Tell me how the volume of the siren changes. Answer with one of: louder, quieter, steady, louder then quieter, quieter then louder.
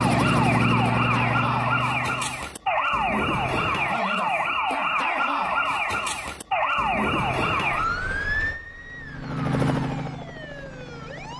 quieter.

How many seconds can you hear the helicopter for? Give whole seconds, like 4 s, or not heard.
5 s.